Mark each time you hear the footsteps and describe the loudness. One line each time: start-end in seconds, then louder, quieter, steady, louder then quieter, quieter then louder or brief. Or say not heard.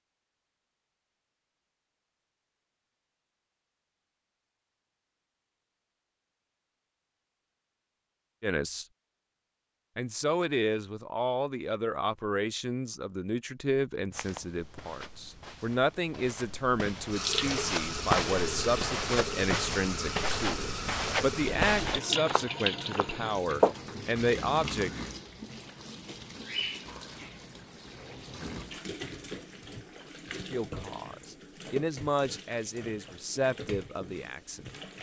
14.1-23.8 louder.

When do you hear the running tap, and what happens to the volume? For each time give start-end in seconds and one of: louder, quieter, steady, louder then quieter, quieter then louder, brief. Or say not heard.
17.1-34.9 quieter.